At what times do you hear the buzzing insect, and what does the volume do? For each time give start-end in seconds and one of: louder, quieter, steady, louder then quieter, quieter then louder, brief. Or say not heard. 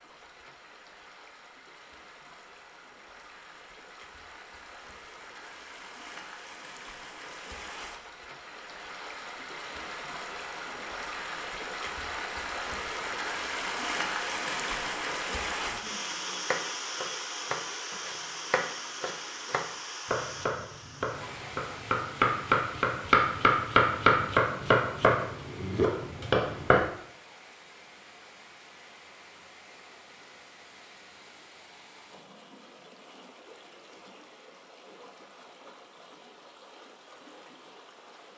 not heard.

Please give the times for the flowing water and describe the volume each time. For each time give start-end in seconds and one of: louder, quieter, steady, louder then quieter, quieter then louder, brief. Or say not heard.
0.0-38.3 louder then quieter.